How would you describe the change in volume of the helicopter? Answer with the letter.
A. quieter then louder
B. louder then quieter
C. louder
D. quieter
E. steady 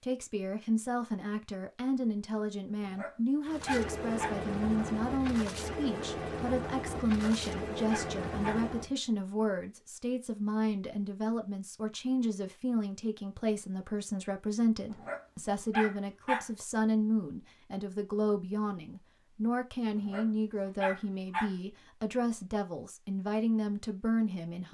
E.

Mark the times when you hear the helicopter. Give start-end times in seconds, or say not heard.
3.5-8.9.